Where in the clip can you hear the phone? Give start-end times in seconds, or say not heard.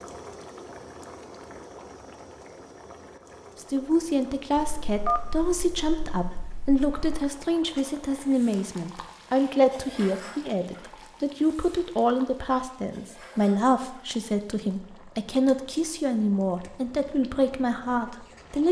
4.5-7.2.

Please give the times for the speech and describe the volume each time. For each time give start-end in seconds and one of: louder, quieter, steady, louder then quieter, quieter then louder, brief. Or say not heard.
3.5-18.6 steady.